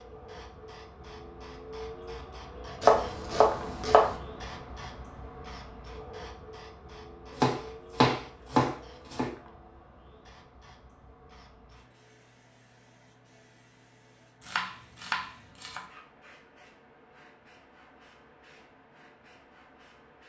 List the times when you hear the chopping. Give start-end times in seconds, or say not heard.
2.8-4.2, 7.3-9.3, 14.4-15.8.